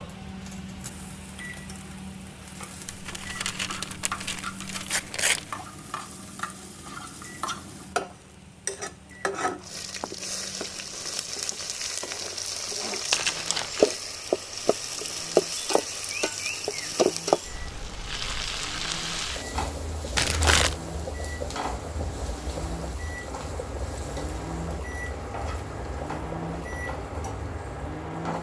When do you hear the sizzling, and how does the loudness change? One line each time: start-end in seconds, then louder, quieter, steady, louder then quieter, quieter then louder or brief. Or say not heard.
0.0-28.3 louder then quieter.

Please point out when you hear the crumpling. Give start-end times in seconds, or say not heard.
2.9-5.5, 13.1-13.9, 20.1-20.8.